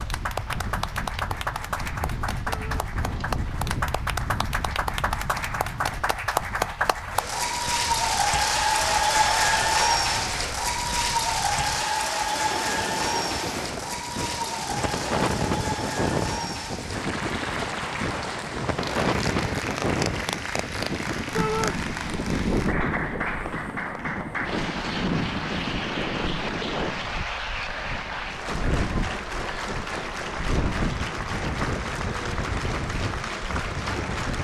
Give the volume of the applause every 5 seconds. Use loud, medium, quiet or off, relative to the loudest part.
medium, loud, loud, medium, medium, medium, medium.